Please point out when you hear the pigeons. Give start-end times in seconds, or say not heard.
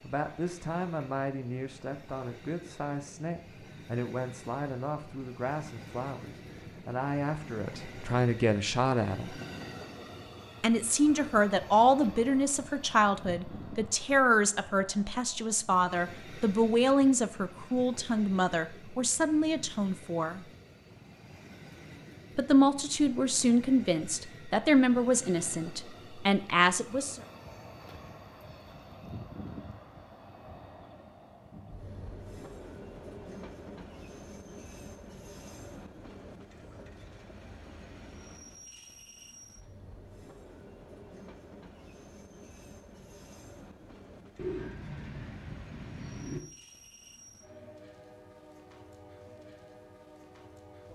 44.4-46.4.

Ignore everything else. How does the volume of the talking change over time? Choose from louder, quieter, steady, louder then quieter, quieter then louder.
louder.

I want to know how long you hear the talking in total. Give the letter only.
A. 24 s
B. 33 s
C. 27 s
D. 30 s
A.